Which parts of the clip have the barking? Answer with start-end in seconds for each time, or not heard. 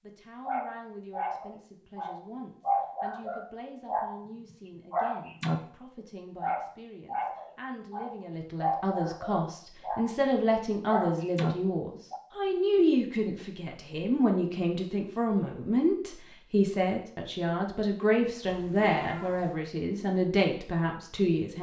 0.5-4.2, 4.9-10.2, 10.8-12.2.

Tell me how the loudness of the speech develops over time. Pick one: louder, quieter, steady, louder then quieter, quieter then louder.
louder.